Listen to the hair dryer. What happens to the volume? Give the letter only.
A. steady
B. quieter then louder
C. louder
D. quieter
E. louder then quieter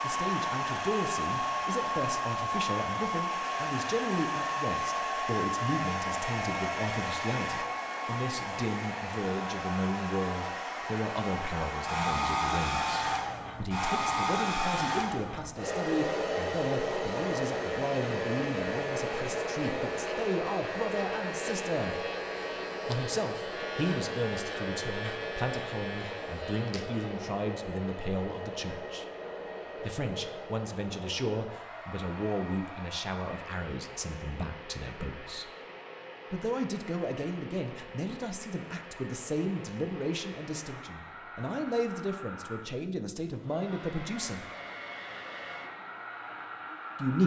D.